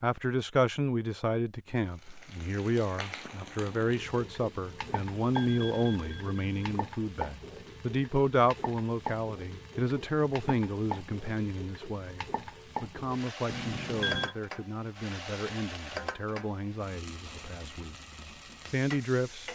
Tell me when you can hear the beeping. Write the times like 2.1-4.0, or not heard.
4.8-6.7, 13.4-14.3.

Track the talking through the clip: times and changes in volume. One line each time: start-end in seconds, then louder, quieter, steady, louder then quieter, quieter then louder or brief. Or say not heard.
0.0-17.9 quieter
18.6-19.4 brief.